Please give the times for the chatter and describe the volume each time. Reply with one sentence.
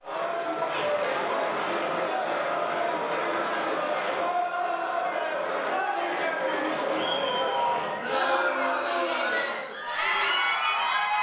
The chatter can be heard from 0.0 to 11.1 s, at a steady volume.